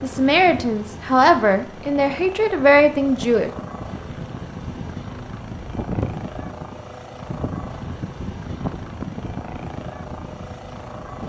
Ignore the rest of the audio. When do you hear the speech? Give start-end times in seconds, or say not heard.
0.0-3.5.